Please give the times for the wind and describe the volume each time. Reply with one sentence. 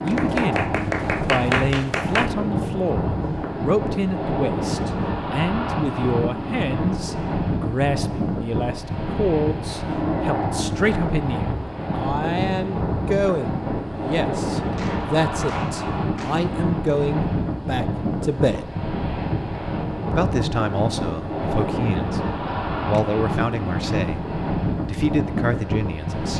The wind can be heard from 0.0 to 26.3 s, at a steady volume.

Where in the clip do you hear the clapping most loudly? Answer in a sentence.
The volume of the clapping peaks at 1 second.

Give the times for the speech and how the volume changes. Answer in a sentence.
The speech can be heard from 0.0 to 18.8 s, at a steady volume; briefly from 20.1 to 22.2 s; briefly from 22.8 to 24.2 s; and briefly from 24.9 to 26.3 s.